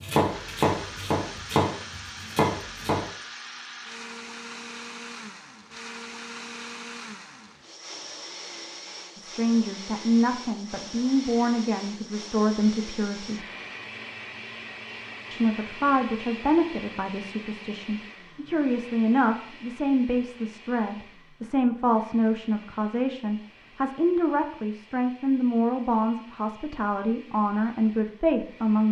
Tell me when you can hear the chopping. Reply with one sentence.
The chopping can be heard from 0.0 to 3.0 s.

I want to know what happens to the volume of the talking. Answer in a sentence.
The volume of the talking stays about the same.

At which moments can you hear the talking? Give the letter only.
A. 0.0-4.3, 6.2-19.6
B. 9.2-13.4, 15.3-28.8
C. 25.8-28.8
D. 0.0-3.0
B.